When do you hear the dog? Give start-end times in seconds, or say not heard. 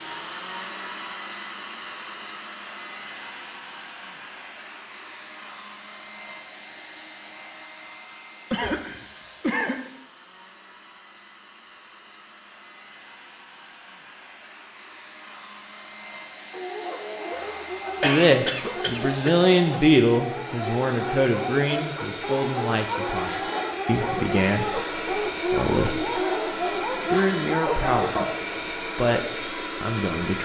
16.5-28.2.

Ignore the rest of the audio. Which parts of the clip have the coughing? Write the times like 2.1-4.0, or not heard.
8.5-9.8, 17.3-19.4.